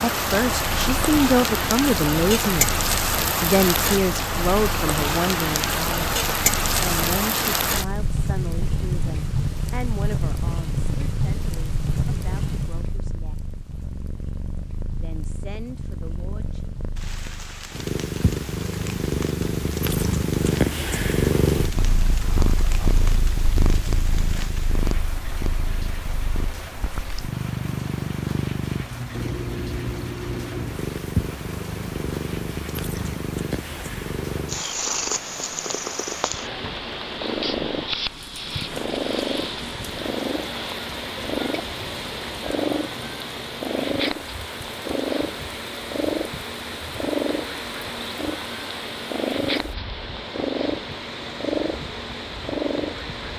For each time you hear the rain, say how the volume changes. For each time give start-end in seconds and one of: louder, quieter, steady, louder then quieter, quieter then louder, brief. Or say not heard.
0.0-53.3 quieter.